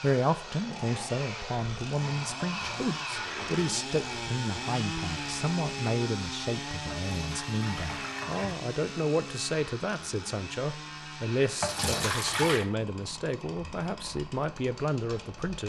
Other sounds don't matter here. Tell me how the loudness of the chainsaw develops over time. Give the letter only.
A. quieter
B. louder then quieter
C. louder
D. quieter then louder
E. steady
A.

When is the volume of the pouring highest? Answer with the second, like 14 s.
12 s.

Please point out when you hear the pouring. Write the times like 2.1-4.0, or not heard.
2.4-3.7, 6.9-8.6, 11.6-12.7.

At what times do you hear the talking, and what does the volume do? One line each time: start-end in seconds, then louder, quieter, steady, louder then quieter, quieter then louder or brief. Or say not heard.
0.0-15.6 steady.